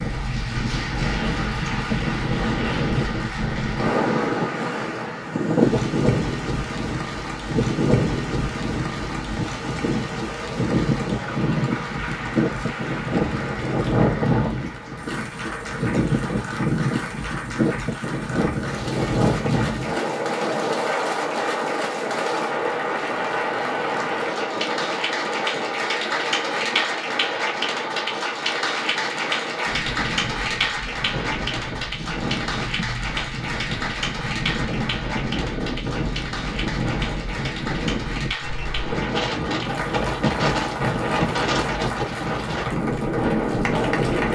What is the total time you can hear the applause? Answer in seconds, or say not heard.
44 s.